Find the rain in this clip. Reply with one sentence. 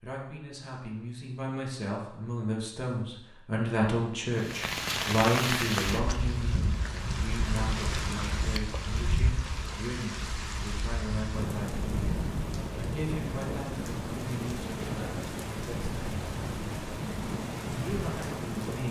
The rain can be heard from 4.3 to 18.8 s.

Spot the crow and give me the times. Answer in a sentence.
You can't hear the crow here.